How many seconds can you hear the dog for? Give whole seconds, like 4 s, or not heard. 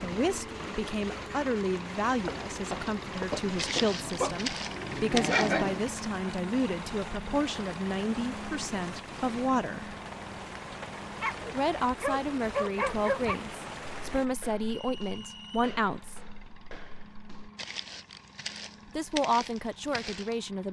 5 s.